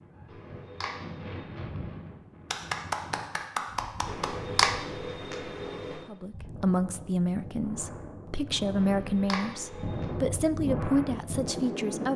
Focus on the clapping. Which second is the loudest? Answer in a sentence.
The loudest moment of the clapping is at 3 seconds.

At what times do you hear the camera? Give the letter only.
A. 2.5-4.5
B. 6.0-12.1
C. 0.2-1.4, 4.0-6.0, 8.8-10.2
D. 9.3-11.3
C.